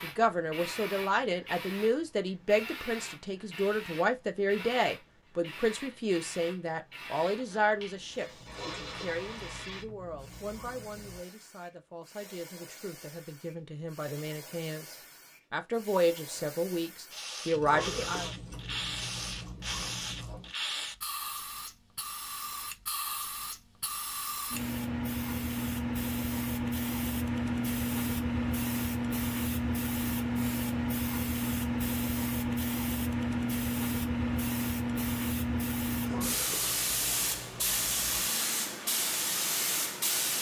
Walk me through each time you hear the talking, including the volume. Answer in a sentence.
You can hear the talking from 0.0 to 18.3 s, getting quieter then louder.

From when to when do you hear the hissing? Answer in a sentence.
You can hear the hissing from 0.0 to 40.3 s.